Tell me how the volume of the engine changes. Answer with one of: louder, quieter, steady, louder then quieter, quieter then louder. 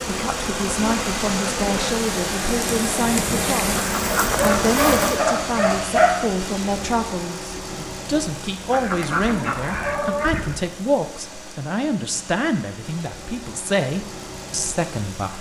quieter.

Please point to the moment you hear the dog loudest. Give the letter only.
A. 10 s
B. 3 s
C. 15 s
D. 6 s
D.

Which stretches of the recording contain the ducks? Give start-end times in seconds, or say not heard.
3.8-5.2, 8.7-10.6.